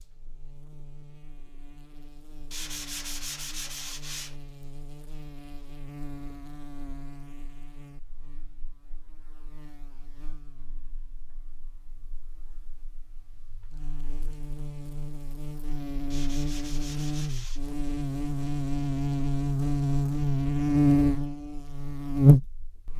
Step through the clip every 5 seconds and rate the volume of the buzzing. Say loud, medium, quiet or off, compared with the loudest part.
quiet, quiet, quiet, medium, loud.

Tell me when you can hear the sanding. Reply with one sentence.
The sanding can be heard from 2.5 to 4.3 s and from 16.1 to 17.8 s.